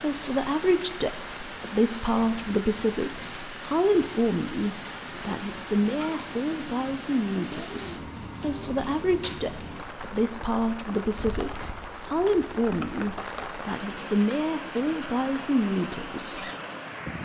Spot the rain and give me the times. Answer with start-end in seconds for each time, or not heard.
0.0-17.1.